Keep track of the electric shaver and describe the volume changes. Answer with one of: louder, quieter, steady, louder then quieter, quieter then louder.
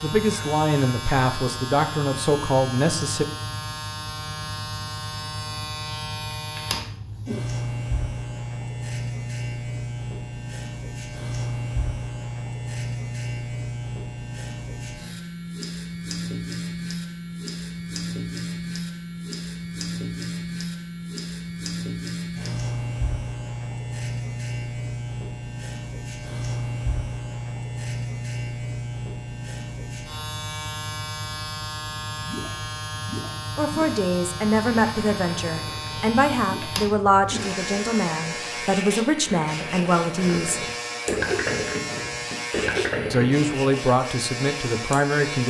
steady.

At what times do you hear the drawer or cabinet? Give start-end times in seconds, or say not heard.
not heard.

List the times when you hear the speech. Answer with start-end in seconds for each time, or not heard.
0.0-3.2, 33.5-40.6, 43.1-45.4.